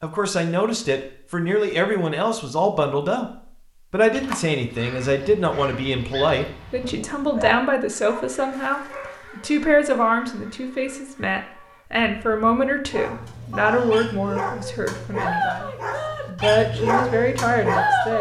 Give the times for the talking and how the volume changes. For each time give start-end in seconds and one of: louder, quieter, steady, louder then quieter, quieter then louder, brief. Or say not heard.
0.0-18.1 steady.